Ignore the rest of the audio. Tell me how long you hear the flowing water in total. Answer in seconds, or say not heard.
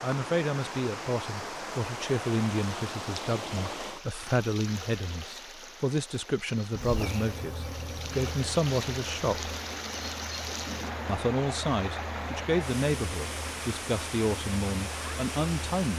16 s.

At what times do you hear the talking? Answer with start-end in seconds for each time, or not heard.
0.0-9.5, 11.1-15.9.